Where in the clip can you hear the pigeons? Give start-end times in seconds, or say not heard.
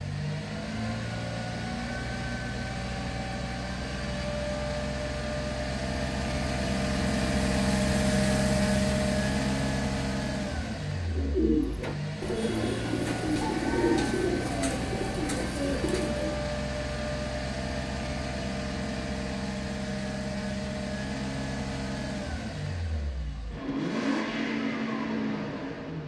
11.1-16.4.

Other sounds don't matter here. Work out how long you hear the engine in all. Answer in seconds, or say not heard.
26 s.